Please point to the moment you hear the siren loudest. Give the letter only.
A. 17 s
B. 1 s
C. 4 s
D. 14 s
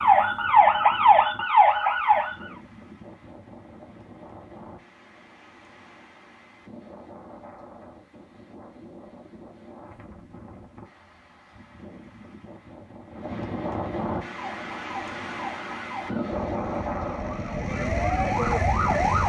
B.